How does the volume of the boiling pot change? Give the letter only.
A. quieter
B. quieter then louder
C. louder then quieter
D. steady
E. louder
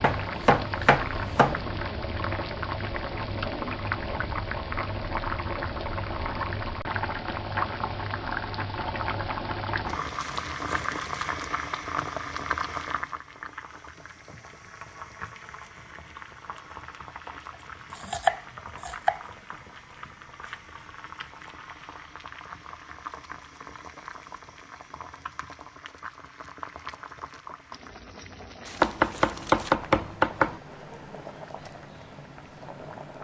A.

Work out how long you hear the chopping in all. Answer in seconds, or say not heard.
5 s.